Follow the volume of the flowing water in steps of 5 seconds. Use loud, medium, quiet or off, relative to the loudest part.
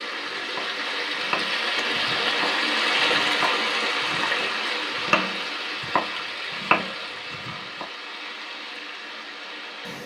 loud, medium.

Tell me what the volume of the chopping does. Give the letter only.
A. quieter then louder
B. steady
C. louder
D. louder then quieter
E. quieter
A.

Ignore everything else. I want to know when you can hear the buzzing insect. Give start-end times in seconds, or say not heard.
not heard.